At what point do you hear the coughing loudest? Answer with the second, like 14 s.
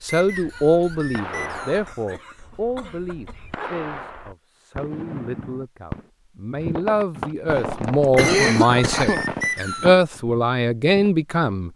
8 s.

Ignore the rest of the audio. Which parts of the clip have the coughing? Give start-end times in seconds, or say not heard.
1.9-3.7, 7.5-9.2.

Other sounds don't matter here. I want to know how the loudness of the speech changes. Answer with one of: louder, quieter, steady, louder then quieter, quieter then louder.
quieter then louder.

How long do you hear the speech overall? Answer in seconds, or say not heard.
12 s.